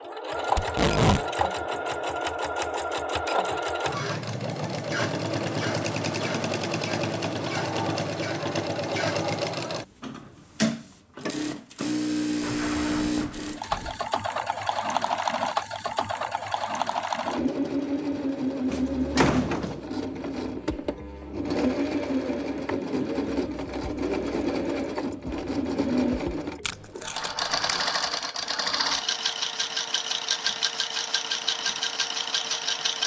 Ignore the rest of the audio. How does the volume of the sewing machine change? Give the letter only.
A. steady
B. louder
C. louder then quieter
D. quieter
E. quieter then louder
A.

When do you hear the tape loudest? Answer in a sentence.
The volume of the tape peaks at 1 second.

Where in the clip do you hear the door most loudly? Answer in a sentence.
The loudest moment of the door is at 19 seconds.